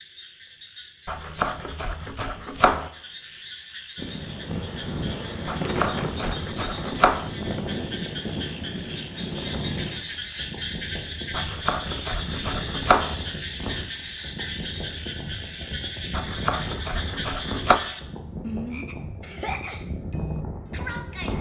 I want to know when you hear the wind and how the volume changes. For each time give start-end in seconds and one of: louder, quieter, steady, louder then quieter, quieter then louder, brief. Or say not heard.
4.0-21.3 quieter.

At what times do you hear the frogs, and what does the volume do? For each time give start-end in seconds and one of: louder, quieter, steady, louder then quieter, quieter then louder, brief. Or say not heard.
0.0-21.3 louder.